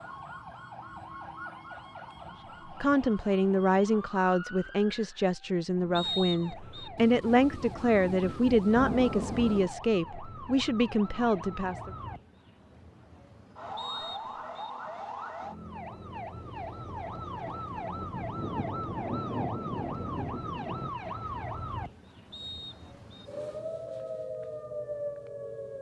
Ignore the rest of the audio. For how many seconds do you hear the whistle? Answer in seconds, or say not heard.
3 s.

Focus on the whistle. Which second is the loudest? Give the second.
6 s.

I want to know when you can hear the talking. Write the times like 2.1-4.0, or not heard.
2.6-11.9.